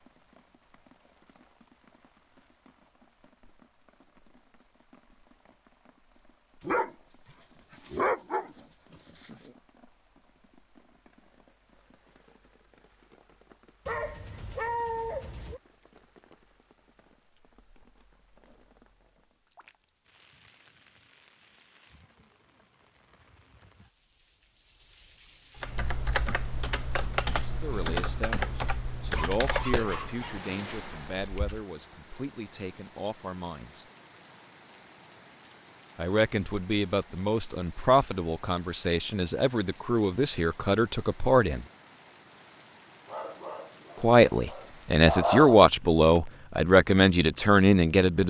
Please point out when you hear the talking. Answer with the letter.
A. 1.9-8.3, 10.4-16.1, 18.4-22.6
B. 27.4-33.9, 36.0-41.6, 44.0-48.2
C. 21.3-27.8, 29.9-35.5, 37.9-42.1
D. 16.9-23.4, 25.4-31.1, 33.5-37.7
B.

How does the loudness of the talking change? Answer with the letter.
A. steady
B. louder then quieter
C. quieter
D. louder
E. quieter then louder
D.